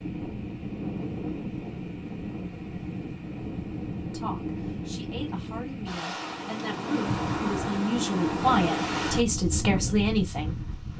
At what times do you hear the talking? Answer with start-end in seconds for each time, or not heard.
4.1-10.6.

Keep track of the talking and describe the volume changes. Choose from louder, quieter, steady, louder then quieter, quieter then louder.
louder.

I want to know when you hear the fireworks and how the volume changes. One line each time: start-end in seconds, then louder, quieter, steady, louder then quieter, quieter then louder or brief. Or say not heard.
not heard.